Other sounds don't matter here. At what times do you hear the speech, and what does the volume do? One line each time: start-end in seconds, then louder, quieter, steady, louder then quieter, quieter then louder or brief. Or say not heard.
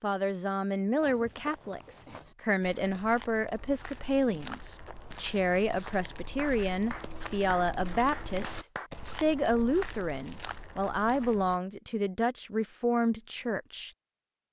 0.0-13.9 steady.